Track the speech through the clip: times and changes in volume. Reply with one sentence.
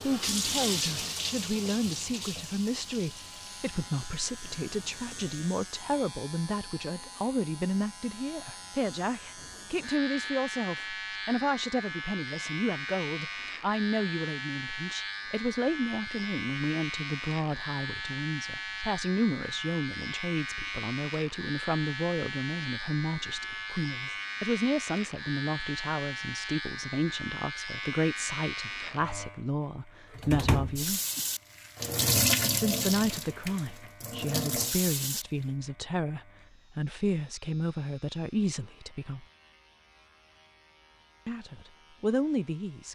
You can hear the speech from 0.0 to 31.0 s, at a steady volume; from 32.5 to 39.2 s, at a steady volume; and briefly from 41.2 to 42.9 s.